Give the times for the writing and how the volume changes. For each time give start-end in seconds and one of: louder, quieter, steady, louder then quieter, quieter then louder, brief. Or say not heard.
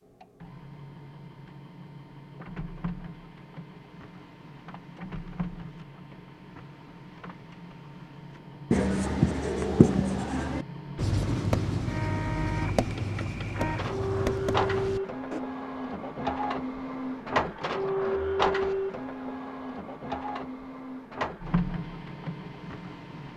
8.7-15.4 quieter.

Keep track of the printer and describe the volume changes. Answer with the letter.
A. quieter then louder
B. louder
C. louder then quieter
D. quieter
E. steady
B.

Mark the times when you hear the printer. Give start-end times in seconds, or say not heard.
0.0-23.3.